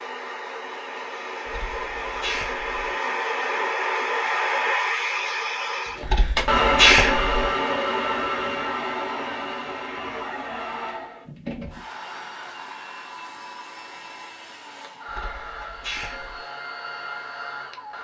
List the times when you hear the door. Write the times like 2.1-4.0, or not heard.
not heard.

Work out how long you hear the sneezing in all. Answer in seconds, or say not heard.
4 s.